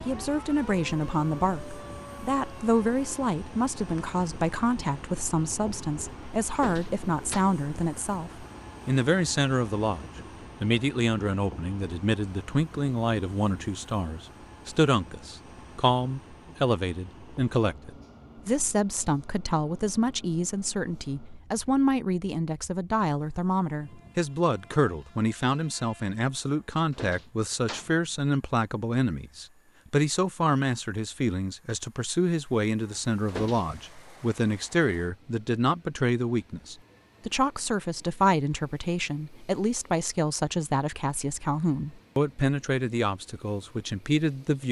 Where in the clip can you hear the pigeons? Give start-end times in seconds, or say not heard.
not heard.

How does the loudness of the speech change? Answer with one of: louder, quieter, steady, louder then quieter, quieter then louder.
steady.